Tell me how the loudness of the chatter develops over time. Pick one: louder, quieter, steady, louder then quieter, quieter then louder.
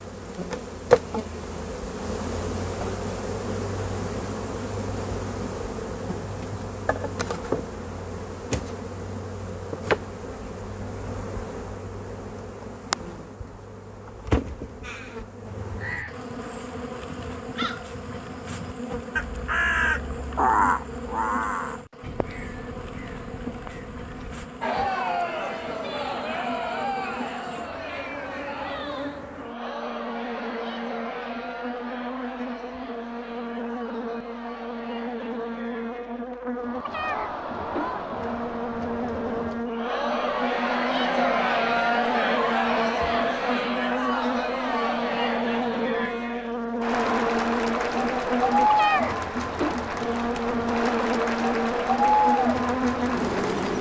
quieter then louder.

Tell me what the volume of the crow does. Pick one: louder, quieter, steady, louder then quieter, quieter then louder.
louder then quieter.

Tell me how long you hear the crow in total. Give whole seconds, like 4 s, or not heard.
10 s.